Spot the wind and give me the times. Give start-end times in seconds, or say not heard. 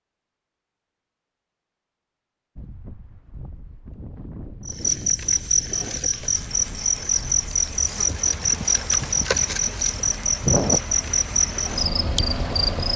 2.5-12.9.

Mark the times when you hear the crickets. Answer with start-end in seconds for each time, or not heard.
4.7-12.9.